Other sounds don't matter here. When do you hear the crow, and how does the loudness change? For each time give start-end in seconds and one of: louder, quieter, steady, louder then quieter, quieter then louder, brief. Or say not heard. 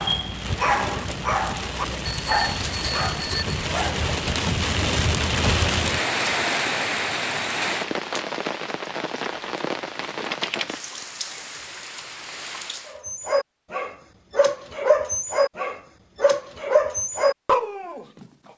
not heard.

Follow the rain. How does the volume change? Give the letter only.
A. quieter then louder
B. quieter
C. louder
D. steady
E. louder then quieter
E.